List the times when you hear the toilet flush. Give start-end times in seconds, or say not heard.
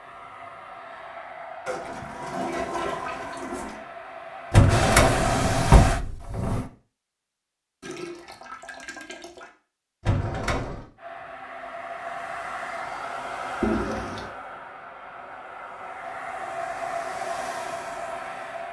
1.6-3.8, 7.8-9.5, 13.6-14.3.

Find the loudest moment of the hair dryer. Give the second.
5 s.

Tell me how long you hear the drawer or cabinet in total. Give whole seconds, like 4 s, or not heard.
3 s.